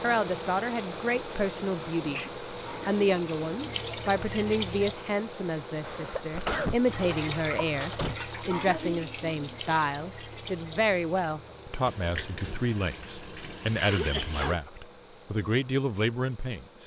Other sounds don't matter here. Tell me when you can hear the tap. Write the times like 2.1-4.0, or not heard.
2.5-5.0, 6.8-14.6.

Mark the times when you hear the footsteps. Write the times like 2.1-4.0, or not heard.
not heard.